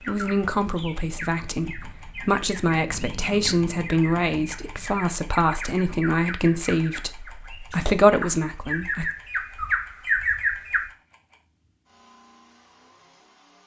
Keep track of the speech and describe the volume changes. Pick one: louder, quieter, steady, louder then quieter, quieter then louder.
louder.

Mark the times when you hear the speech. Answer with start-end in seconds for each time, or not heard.
0.1-9.1.